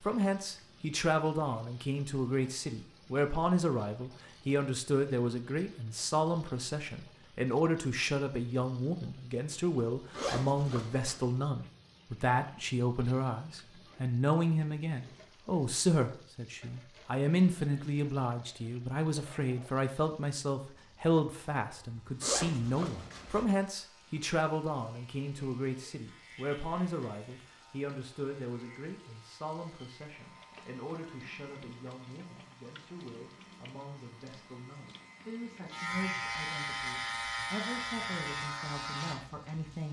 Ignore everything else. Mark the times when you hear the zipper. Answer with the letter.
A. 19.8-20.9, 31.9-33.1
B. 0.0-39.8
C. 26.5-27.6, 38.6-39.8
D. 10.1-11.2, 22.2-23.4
D.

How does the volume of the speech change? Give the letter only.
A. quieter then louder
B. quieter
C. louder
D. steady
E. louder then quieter
B.